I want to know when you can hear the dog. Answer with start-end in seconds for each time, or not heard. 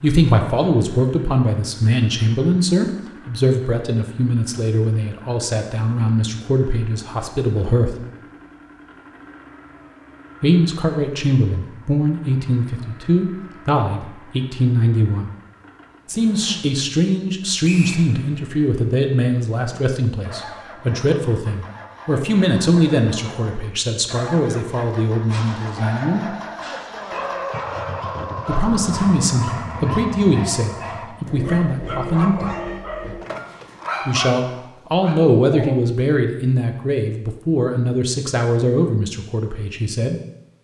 25.2-35.8.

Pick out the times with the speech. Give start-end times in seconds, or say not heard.
0.0-8.0, 10.4-15.3, 16.1-26.4, 28.4-32.5, 34.0-40.2.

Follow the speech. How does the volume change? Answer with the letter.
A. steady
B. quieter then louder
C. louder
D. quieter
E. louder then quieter
A.